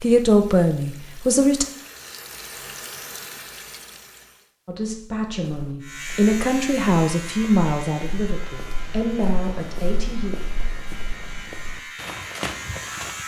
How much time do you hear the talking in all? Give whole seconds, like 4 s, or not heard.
7 s.